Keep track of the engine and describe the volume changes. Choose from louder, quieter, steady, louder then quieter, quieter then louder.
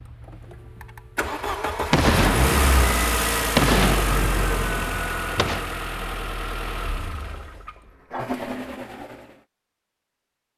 louder then quieter.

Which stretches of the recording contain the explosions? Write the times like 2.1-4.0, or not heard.
1.9-5.7.